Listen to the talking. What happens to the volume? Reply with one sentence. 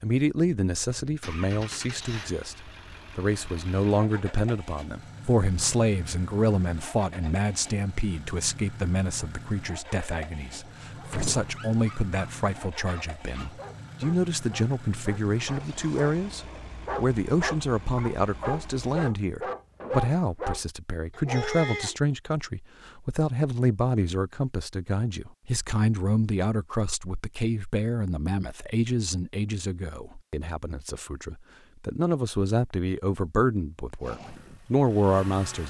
The volume of the talking stays about the same.